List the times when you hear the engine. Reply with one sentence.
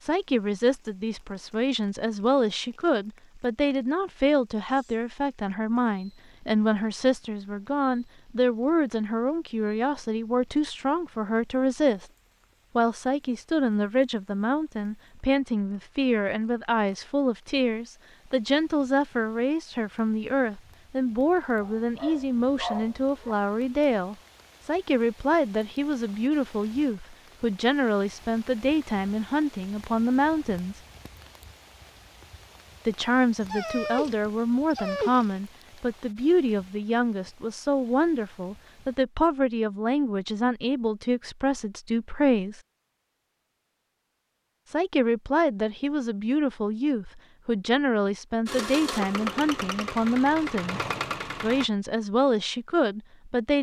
You can hear the engine from 48.5 to 51.7 s.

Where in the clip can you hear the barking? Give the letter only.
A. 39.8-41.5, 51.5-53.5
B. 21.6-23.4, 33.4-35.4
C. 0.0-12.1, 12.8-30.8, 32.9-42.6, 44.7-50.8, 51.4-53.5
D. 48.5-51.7
B.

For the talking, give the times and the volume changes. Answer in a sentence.
The talking can be heard from 0.0 to 12.1 s, at a steady volume; from 12.8 to 30.8 s, at a steady volume; from 32.9 to 42.6 s, at a steady volume; from 44.7 to 50.8 s, at a steady volume; and briefly from 51.4 to 53.5 s.